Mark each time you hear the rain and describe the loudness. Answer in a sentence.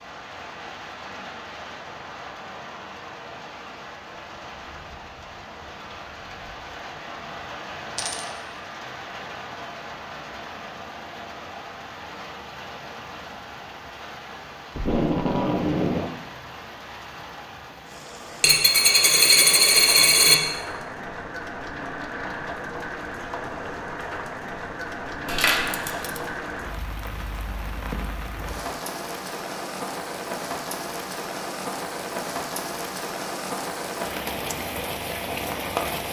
The rain can be heard from 0.0 to 36.0 s, getting louder.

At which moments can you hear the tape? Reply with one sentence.
The tape can be heard from 14.8 to 16.1 s.